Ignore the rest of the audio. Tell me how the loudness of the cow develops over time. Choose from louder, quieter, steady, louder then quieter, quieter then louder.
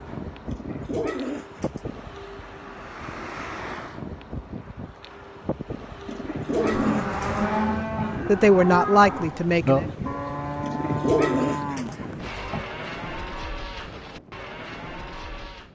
quieter.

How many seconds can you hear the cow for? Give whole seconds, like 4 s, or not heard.
9 s.